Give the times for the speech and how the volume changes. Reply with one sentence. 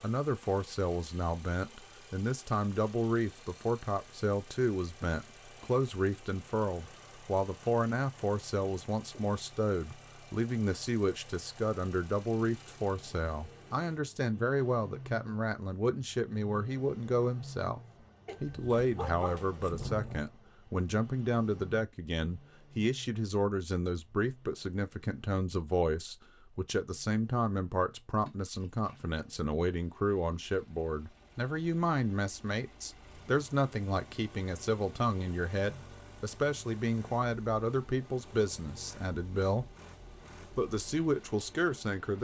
The speech can be heard from 0.0 to 17.8 s, at a steady volume; from 18.4 to 39.7 s, at a steady volume; and briefly from 40.5 to 42.1 s.